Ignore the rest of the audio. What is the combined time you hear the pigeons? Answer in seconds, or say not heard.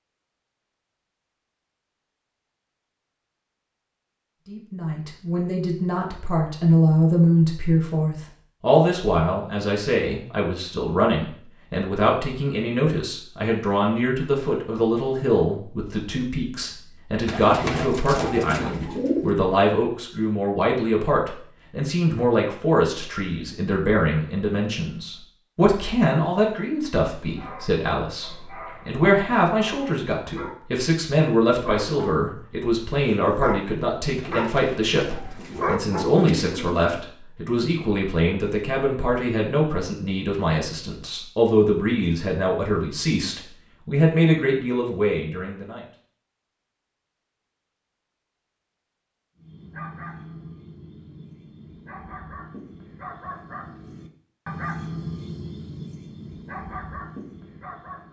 5 s.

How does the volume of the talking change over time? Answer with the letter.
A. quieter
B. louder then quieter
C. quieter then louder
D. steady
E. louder
D.